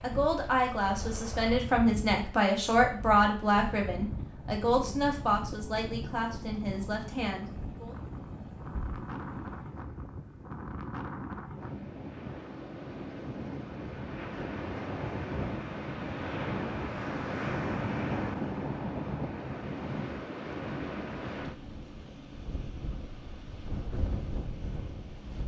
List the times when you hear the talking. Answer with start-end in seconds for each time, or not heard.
0.0-8.0.